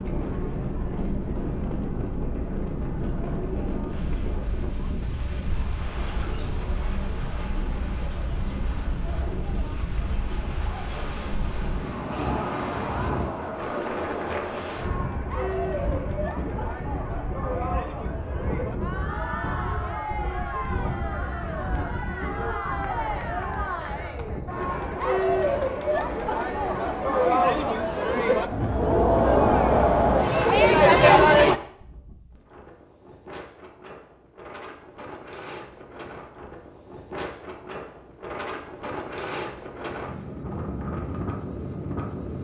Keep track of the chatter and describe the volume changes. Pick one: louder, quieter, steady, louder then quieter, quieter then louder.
louder.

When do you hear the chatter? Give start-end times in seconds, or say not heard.
0.0-31.6.